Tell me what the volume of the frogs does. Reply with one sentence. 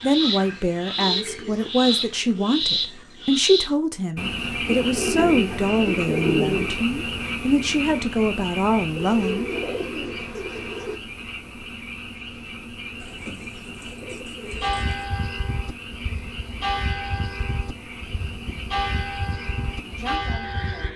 The volume of the frogs goes down.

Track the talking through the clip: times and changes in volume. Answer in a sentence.
The talking can be heard from 0.0 to 9.5 s, at a steady volume; and briefly from 19.8 to 20.9 s.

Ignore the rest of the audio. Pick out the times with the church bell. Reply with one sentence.
You can hear the church bell from 14.5 to 20.9 s.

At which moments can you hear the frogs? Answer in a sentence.
You can hear the frogs from 0.0 to 20.9 s.